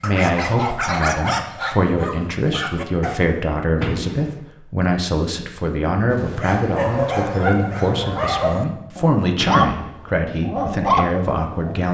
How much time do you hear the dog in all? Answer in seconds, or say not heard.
9 s.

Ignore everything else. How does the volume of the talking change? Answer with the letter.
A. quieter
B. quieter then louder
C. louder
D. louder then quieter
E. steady
E.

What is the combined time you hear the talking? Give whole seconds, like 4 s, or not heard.
12 s.